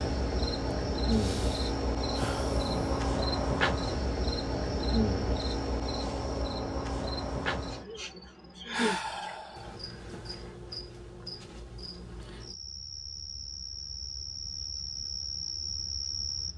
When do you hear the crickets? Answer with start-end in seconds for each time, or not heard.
0.0-16.5.